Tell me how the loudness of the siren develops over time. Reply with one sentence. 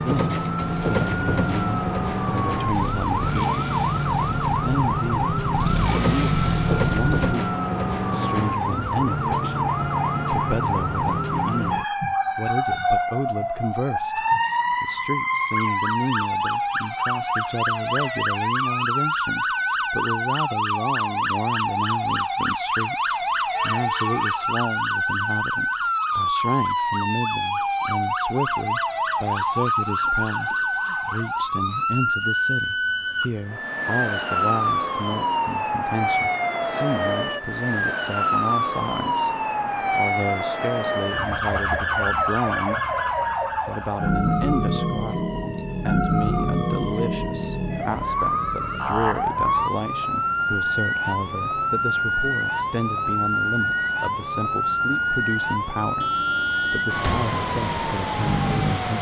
The volume of the siren stays about the same.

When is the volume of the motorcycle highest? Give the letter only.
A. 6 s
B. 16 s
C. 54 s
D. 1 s
A.